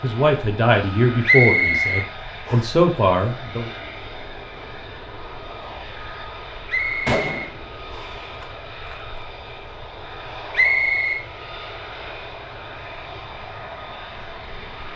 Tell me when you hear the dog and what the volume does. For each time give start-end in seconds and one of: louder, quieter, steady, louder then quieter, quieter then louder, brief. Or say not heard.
not heard.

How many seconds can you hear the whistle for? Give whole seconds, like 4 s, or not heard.
4 s.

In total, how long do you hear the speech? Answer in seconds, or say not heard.
4 s.